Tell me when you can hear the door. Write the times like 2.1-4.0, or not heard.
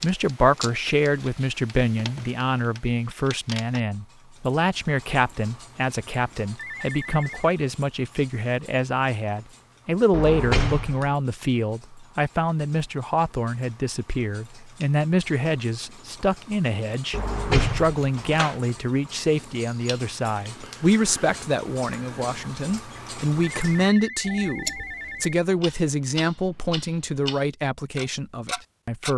10.1-11.1, 17.1-18.6.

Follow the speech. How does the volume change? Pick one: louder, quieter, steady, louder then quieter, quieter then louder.
steady.